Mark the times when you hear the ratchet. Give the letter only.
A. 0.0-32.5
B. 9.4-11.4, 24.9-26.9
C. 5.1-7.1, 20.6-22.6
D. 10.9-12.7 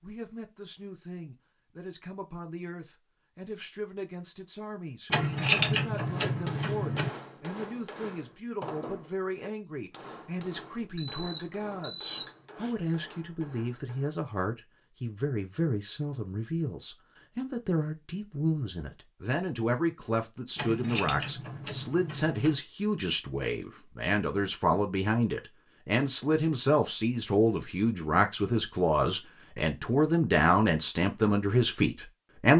C.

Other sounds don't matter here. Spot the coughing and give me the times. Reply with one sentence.
The coughing can't be heard in this clip.